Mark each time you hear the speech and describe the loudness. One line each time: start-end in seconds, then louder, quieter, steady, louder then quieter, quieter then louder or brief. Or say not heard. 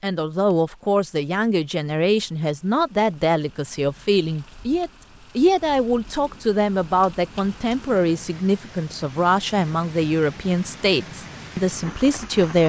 0.0-12.6 steady.